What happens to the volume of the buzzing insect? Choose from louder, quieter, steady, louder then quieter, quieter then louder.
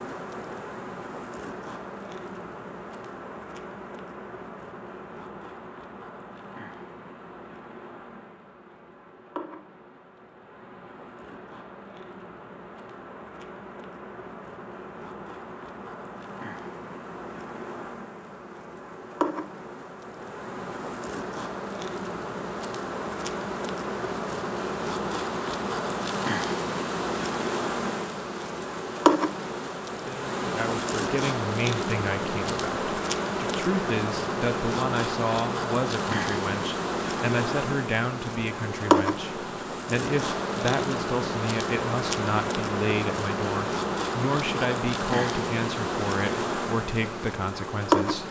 louder.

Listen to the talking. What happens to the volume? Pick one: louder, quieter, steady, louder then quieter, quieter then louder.
steady.